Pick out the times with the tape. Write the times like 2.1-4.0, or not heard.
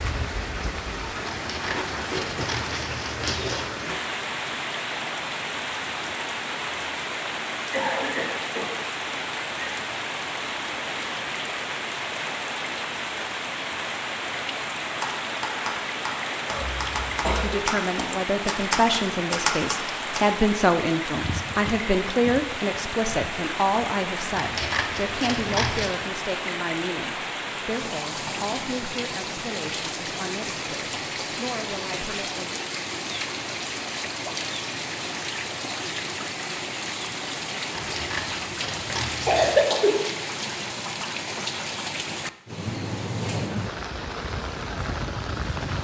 not heard.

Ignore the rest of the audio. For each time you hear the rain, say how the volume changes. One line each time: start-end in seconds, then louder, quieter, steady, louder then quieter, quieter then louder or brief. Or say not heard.
0.0-45.7 steady.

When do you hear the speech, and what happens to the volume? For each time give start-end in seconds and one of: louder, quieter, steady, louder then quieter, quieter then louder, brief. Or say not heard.
17.2-32.6 quieter.